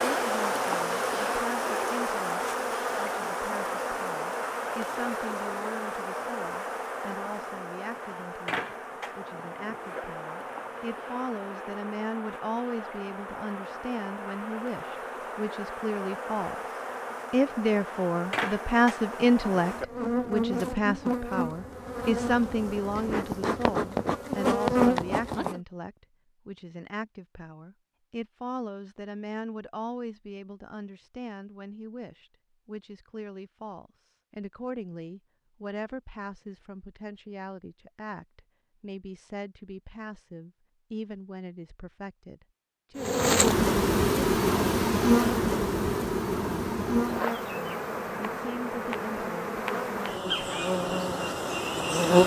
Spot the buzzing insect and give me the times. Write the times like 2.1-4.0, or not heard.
0.0-25.6, 43.0-52.2.